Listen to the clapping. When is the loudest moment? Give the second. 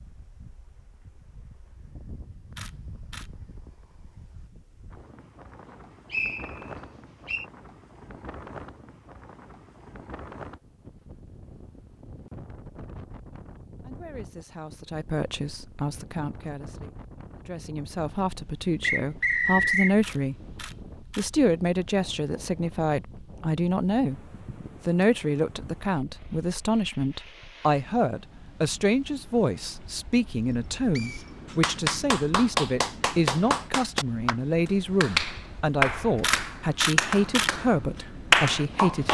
38 s.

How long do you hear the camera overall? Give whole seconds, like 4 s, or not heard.
3 s.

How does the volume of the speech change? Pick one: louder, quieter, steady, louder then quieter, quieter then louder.
louder.